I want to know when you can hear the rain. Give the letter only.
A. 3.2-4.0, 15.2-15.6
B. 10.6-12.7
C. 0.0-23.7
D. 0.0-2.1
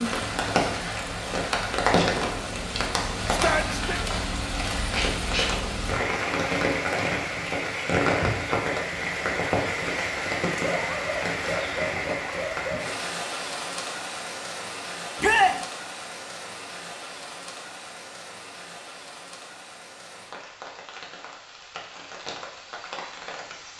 C.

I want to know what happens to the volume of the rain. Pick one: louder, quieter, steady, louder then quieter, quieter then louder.
quieter.